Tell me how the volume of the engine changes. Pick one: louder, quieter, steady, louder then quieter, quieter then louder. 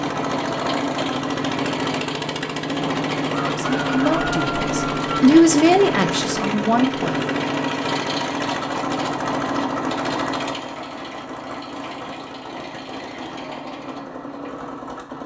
quieter.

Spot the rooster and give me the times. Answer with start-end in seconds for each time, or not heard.
3.5-5.2.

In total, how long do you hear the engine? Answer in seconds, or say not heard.
15 s.